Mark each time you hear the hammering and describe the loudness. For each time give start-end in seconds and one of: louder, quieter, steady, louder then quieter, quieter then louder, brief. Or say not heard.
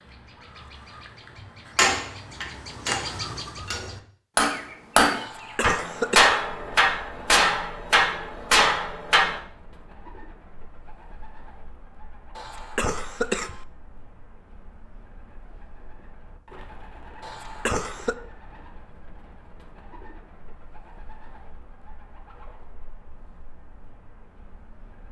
1.8-9.4 louder.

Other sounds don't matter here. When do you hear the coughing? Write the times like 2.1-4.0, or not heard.
5.2-6.3, 12.3-13.7, 17.2-18.1.